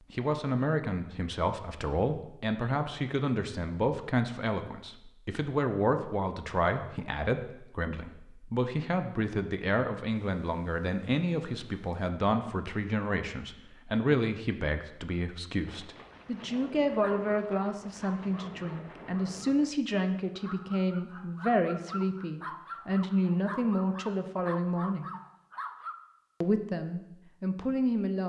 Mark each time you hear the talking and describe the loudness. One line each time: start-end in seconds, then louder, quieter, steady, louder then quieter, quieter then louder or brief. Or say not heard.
0.1-25.1 steady
26.4-28.2 brief.